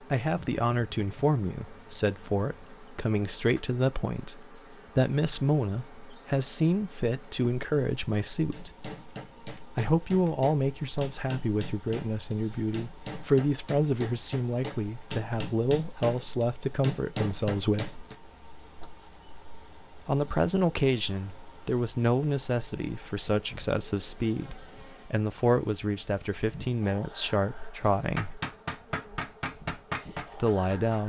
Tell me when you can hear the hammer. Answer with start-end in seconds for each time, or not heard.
8.5-18.1, 27.9-31.0.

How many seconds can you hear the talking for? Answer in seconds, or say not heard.
26 s.